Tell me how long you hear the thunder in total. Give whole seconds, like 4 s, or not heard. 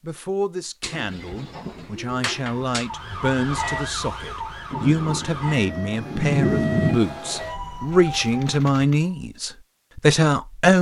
2 s.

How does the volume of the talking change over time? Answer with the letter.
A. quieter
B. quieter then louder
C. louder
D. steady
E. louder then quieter
C.